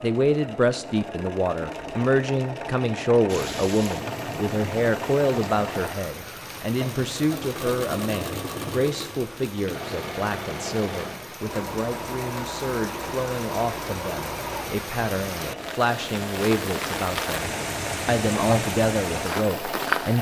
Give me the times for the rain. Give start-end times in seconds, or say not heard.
3.2-20.1.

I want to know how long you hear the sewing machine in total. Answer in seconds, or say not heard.
20 s.